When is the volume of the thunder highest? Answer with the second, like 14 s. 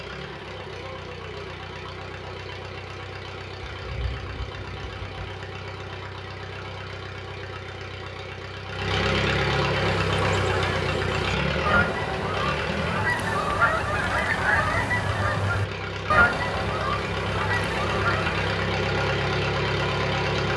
4 s.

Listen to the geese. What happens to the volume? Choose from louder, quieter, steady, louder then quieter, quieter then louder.
louder then quieter.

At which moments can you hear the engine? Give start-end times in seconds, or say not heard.
0.0-20.5.